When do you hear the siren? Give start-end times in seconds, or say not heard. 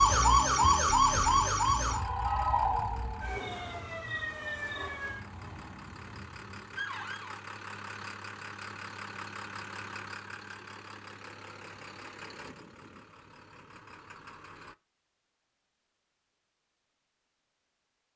0.0-7.4.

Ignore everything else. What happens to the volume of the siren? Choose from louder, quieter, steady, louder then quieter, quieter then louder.
quieter.